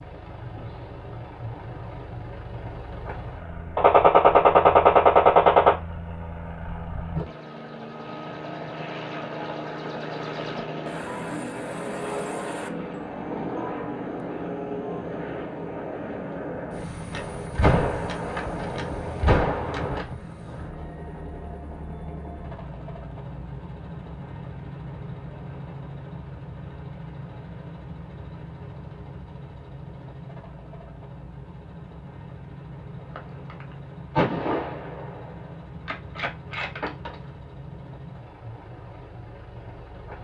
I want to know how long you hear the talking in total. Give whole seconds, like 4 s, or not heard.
not heard.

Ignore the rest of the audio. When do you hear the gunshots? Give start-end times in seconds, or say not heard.
3.8-5.8, 17.1-20.1, 33.0-37.3.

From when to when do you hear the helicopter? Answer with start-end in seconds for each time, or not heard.
0.0-40.1.